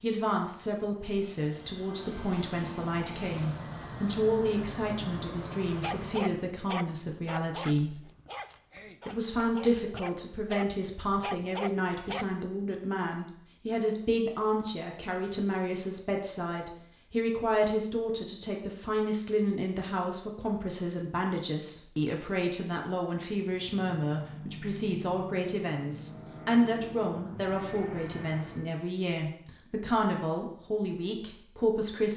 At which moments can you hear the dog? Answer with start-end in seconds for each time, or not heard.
5.7-12.2.